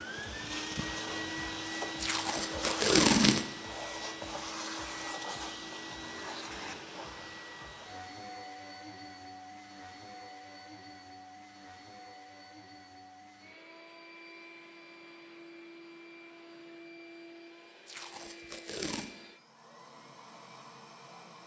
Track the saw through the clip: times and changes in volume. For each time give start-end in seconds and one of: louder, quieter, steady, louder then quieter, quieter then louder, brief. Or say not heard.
not heard.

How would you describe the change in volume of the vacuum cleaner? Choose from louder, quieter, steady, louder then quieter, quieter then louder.
quieter.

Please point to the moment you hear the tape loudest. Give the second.
3 s.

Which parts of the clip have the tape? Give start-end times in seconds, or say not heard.
2.0-3.5, 17.9-19.1.